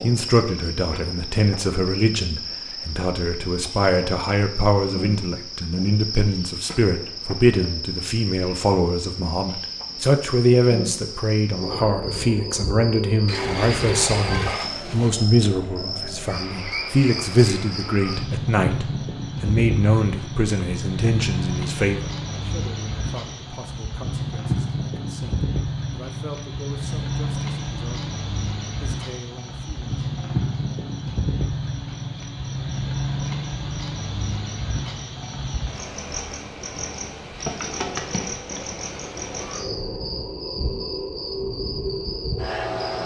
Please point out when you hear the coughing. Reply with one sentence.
You can't hear the coughing here.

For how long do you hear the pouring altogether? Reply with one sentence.
The pouring can be heard for 2 seconds in total.